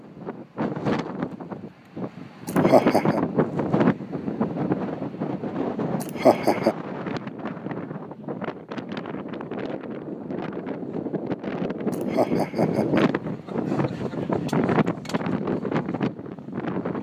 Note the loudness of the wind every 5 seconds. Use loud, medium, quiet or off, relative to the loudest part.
loud, medium, loud, loud.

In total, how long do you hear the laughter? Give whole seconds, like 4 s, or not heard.
3 s.